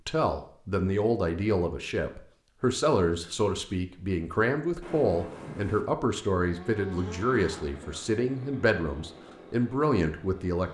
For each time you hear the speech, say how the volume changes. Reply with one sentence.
You can hear the speech from 0.1 to 10.6 s, at a steady volume.